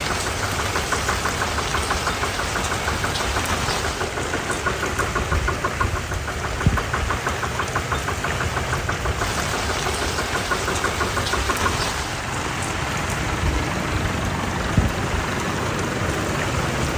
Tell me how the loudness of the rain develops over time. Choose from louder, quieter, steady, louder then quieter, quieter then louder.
steady.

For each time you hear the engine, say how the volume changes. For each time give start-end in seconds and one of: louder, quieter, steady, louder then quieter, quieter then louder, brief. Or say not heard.
0.0-16.9 steady.